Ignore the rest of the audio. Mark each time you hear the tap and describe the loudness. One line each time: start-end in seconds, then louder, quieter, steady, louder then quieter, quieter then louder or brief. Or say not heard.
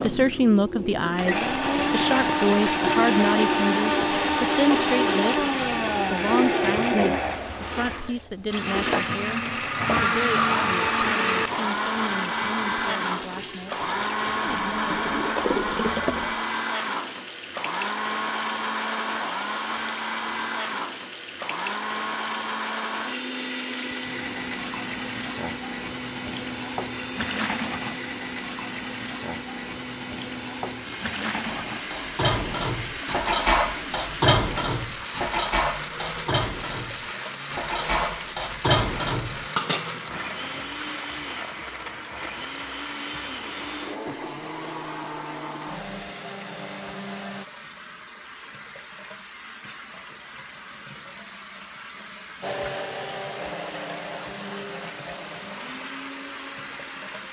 0.0-57.2 quieter.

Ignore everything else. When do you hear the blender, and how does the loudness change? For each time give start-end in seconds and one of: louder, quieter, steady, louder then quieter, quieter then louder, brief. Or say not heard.
0.0-47.5 quieter
52.4-57.2 quieter.